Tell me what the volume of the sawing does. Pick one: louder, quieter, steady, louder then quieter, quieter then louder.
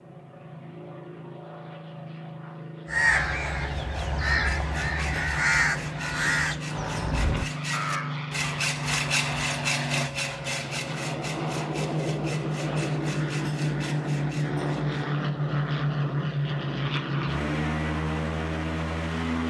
louder then quieter.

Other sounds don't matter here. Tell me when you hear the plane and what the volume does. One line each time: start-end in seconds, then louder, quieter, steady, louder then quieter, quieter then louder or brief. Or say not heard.
0.0-19.4 louder.